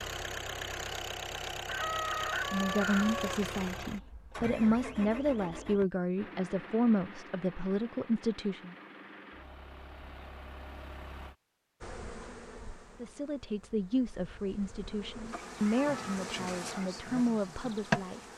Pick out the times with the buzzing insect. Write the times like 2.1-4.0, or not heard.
11.8-18.3.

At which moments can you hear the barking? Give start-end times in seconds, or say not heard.
not heard.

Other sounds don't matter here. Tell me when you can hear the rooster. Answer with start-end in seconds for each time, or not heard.
1.6-3.4.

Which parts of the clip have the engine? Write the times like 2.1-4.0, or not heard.
0.0-11.3.